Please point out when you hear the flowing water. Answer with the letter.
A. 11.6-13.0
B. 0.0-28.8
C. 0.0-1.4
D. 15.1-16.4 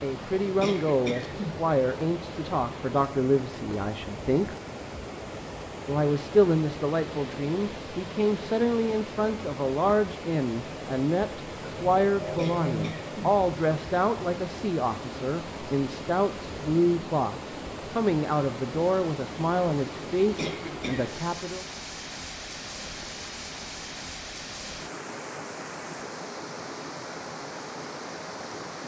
B.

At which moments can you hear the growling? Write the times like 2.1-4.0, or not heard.
11.6-13.0.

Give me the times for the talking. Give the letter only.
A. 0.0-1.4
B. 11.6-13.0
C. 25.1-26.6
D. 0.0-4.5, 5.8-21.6
D.